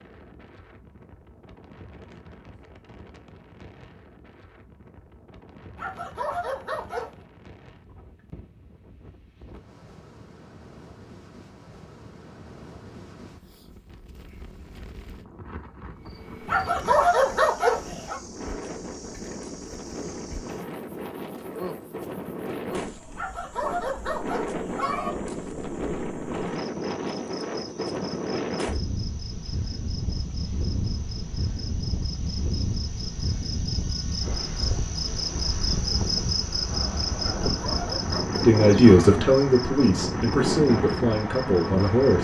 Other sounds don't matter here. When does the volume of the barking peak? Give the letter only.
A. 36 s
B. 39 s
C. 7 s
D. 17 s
D.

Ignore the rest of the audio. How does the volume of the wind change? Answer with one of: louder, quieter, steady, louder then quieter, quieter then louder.
louder.